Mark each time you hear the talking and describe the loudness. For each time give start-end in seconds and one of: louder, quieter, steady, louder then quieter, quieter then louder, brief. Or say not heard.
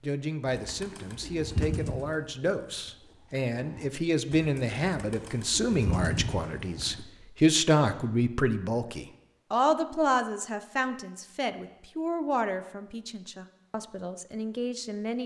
0.0-15.2 louder then quieter.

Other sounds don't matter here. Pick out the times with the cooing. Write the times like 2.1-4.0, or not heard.
0.5-7.0.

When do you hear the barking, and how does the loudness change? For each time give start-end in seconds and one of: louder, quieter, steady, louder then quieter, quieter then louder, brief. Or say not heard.
not heard.